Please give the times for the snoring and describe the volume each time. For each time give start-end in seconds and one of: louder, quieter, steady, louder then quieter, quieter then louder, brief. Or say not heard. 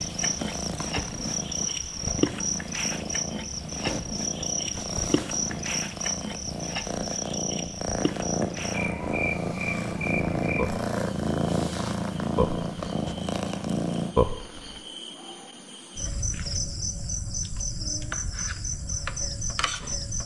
not heard.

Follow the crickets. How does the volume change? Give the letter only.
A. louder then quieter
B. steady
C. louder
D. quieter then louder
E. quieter
B.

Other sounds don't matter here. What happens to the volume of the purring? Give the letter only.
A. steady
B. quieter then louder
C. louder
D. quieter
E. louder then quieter
C.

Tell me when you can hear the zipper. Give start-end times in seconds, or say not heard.
not heard.